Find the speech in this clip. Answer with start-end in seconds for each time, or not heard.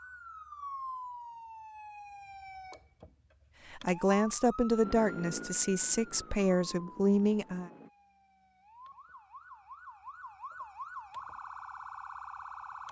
3.7-7.7.